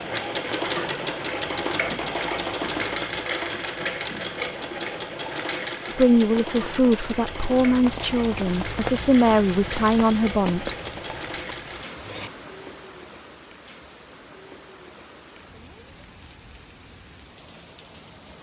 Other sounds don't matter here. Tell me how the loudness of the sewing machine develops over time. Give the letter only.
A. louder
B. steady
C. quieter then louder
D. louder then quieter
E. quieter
E.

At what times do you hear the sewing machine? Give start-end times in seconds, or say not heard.
0.0-12.3.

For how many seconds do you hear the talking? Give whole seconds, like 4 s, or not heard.
5 s.